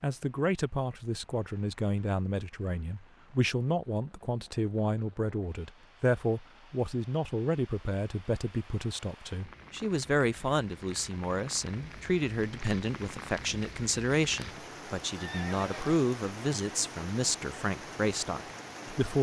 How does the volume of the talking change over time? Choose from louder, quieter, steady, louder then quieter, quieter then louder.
steady.